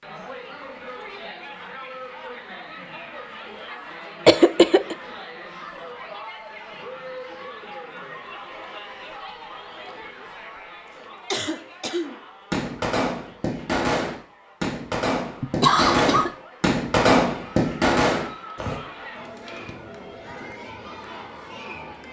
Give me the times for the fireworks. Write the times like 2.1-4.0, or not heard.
12.0-18.8.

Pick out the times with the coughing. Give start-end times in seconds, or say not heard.
4.2-5.0, 11.3-12.2, 15.4-16.3.